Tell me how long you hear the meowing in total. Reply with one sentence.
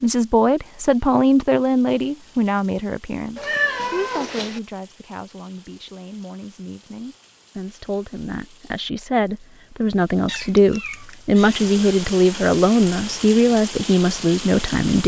You can hear the meowing for 3 seconds altogether.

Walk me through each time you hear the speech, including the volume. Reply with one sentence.
You can hear the speech from 0.0 to 15.0 s, getting quieter then louder.